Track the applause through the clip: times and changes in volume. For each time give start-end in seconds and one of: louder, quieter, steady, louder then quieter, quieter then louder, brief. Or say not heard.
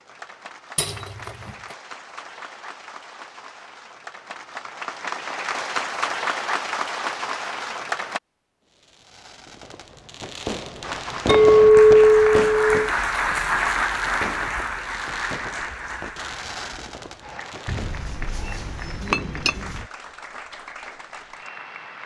0.0-8.2 louder
10.8-22.0 quieter.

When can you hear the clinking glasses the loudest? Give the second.
12 s.